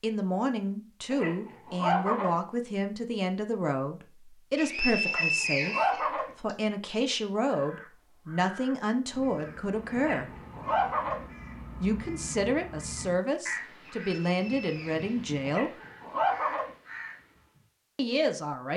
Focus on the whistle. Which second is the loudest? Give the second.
5 s.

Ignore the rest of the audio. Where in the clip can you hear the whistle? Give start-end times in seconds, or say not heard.
4.5-6.5, 14.0-15.2.